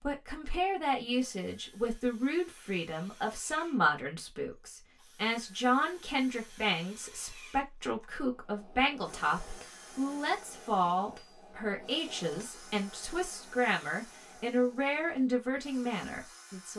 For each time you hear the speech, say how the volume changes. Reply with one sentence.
The speech can be heard from 0.0 to 16.7 s, at a steady volume.